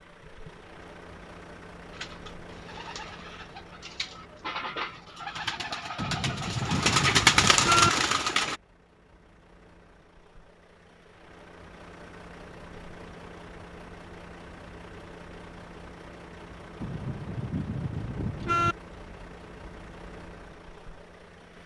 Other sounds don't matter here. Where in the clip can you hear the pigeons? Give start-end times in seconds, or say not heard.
1.9-8.6.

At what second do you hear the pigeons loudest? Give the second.
7 s.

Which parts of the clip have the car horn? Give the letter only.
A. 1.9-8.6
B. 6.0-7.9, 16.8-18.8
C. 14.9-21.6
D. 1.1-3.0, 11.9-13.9
B.